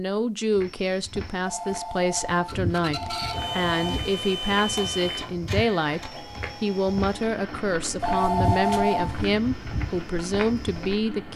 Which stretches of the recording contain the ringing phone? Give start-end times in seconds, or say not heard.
1.4-4.0, 8.0-9.3.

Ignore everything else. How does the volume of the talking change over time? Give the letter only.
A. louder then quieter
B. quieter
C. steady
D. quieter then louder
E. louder
C.